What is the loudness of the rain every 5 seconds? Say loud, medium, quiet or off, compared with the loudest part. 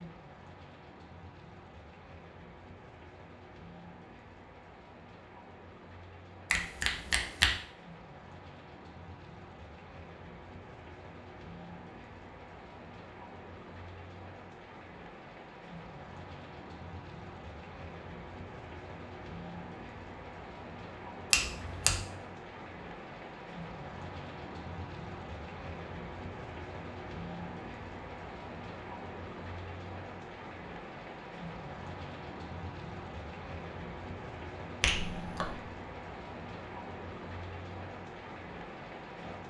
medium, medium, medium, loud, loud, loud, loud, loud.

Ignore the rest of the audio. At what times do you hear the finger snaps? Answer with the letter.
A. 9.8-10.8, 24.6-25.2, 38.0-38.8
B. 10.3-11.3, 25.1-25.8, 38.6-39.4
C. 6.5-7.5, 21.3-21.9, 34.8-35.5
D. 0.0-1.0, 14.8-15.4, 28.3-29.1
C.